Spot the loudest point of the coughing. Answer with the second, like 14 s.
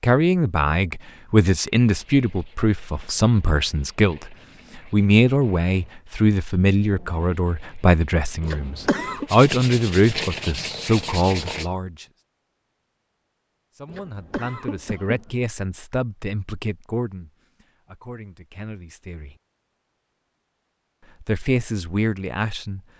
9 s.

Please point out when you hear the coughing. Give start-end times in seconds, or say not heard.
8.4-9.2, 13.8-15.4.